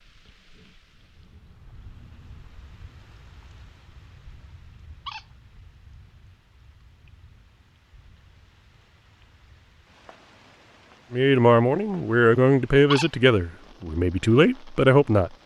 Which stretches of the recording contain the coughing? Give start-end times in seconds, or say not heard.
not heard.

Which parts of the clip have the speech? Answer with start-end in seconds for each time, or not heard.
11.1-15.3.